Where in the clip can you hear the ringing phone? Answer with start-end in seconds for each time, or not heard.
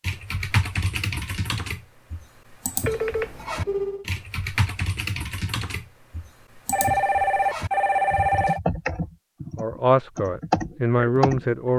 2.9-4.0, 6.7-8.6.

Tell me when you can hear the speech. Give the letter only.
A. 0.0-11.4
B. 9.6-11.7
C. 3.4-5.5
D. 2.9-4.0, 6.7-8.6
B.